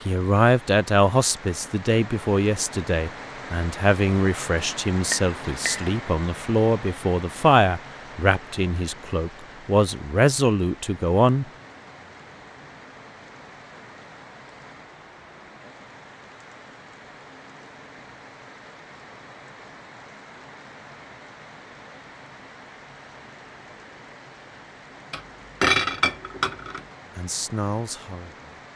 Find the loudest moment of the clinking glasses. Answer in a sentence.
The volume of the clinking glasses peaks at 26 seconds.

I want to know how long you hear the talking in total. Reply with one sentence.
The talking can be heard for 13 seconds in total.